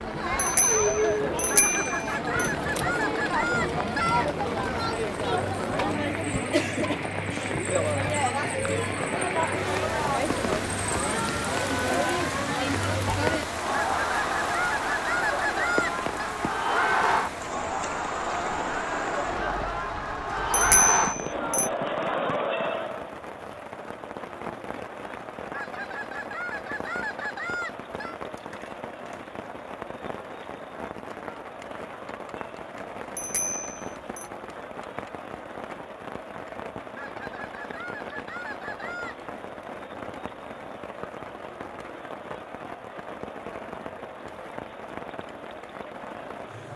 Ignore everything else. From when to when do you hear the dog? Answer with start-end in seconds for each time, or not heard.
not heard.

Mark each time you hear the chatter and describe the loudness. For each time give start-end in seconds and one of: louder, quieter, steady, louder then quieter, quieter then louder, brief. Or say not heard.
0.0-46.7 quieter.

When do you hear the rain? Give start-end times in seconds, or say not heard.
0.0-46.7.